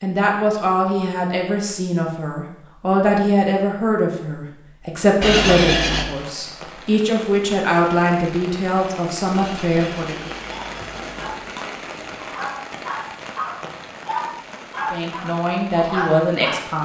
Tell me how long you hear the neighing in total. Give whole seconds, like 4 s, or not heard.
3 s.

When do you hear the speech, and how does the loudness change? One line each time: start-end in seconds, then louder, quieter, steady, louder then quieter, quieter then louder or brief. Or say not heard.
0.0-10.3 steady
14.9-16.7 brief.